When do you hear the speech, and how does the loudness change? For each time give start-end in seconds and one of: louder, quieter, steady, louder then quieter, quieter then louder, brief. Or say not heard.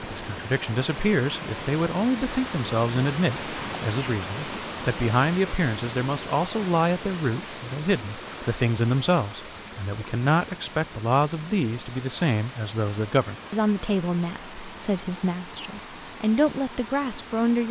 0.0-17.6 steady.